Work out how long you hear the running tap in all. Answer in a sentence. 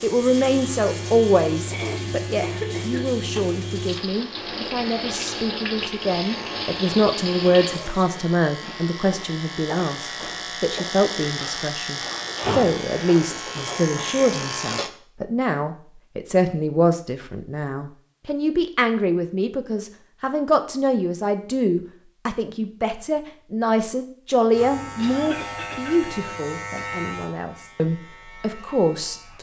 The running tap can be heard for 8 seconds in total.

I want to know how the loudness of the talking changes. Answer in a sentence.
The loudness of the talking stays about the same.